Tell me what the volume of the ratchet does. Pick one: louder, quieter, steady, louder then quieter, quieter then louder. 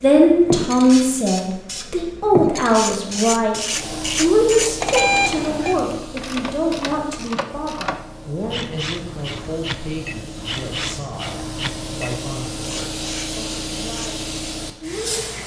quieter.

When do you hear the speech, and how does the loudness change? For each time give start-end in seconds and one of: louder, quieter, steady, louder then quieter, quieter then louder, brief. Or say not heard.
0.0-15.4 quieter.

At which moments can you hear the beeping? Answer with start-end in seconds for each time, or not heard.
4.8-5.8.